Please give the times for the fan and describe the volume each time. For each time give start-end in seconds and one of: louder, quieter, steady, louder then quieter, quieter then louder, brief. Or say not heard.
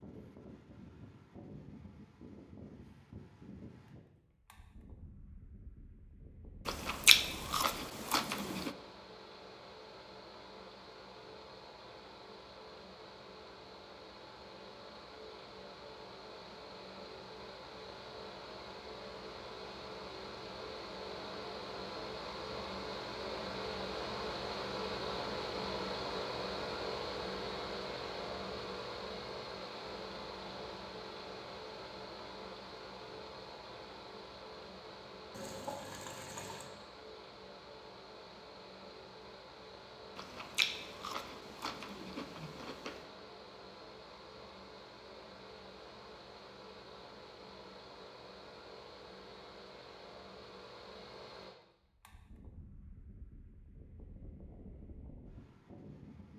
0.0-56.3 louder then quieter.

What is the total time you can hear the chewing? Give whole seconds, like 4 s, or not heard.
5 s.